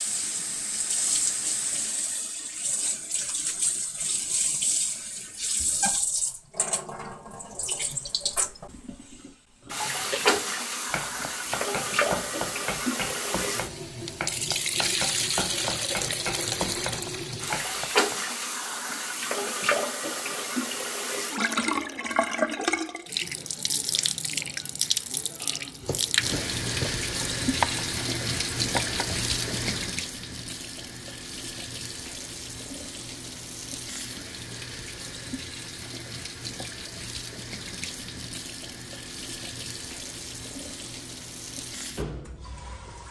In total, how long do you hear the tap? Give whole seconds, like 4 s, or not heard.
43 s.